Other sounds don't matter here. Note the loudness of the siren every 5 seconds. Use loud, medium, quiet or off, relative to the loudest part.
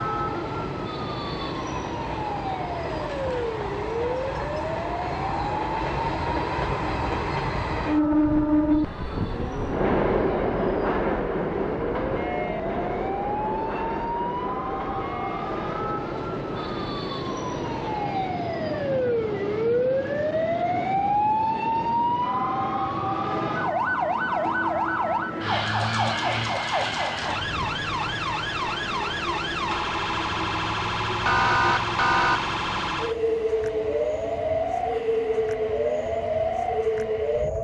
medium, quiet, medium, loud, loud, loud, loud, loud.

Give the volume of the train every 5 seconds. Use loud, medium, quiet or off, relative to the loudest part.
medium, loud, loud, medium, quiet, quiet, quiet, quiet.